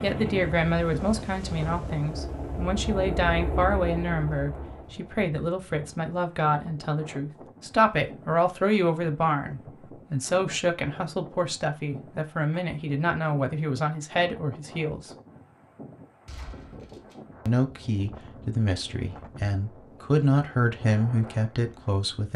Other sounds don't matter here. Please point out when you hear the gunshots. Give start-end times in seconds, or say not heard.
16.2-17.2.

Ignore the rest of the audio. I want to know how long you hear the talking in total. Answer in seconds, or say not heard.
20 s.